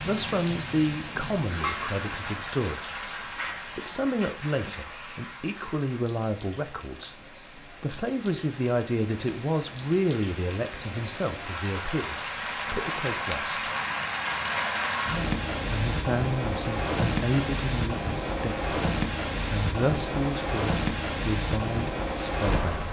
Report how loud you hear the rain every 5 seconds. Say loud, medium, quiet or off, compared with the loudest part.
medium, quiet, loud, loud, loud.